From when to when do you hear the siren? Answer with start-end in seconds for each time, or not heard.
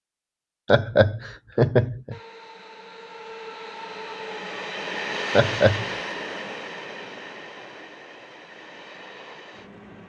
not heard.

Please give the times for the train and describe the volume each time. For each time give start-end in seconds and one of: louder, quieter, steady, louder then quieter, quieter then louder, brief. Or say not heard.
2.1-10.0 louder then quieter.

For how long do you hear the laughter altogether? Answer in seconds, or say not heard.
2 s.